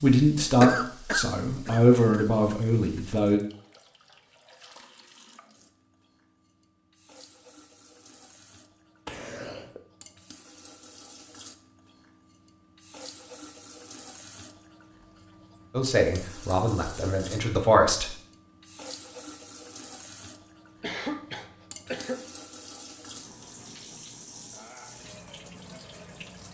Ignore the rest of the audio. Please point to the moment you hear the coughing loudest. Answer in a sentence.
The volume of the coughing peaks at 1 second.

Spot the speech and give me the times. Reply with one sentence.
The speech can be heard from 0.0 to 3.4 s and from 15.8 to 18.1 s.